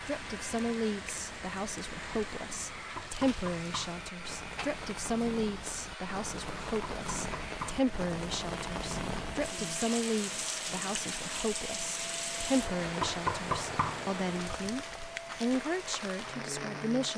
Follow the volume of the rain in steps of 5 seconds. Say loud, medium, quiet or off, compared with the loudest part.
medium, loud, loud, loud.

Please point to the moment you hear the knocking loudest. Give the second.
13 s.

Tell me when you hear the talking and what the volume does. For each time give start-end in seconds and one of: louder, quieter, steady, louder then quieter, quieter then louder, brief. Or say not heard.
0.0-17.1 steady.